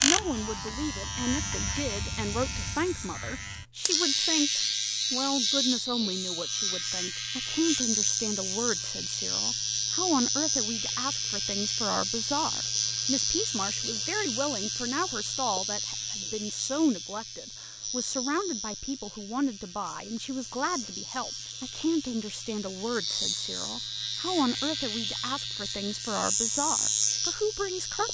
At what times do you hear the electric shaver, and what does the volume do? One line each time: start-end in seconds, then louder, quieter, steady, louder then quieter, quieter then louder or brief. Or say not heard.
0.0-28.0 quieter then louder.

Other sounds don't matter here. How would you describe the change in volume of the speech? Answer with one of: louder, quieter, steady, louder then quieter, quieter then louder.
steady.